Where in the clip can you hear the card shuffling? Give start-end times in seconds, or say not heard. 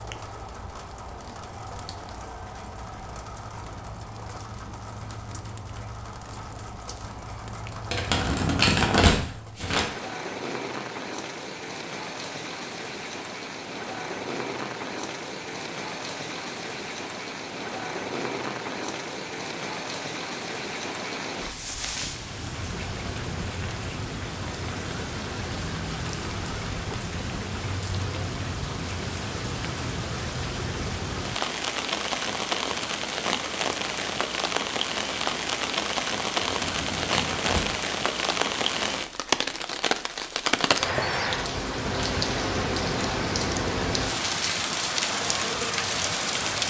7.9-9.9, 36.5-37.8.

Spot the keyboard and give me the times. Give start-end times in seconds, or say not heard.
not heard.